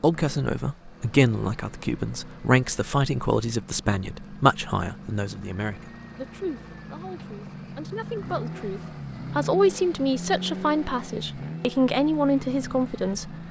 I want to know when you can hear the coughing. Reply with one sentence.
The coughing can't be heard in this clip.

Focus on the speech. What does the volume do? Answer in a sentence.
The volume of the speech goes down, then up.